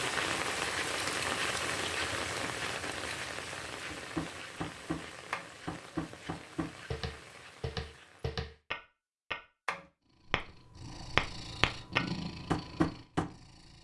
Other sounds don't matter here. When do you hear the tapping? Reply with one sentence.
The tapping can be heard from 3.9 to 13.3 s.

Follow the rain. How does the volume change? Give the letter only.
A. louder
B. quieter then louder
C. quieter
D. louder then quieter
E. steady
C.